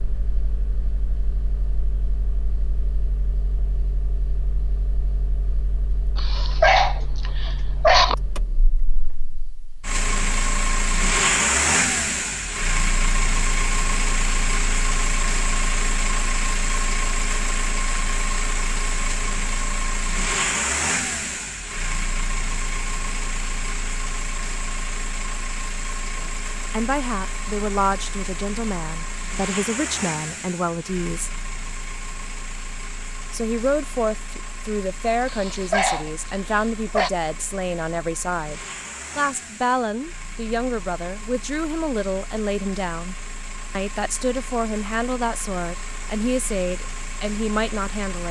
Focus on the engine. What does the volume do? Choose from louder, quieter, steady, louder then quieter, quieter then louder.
louder then quieter.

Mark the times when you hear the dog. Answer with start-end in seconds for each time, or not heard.
6.2-8.2, 35.2-37.1.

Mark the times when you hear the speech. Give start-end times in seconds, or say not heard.
26.1-31.3, 33.3-48.2.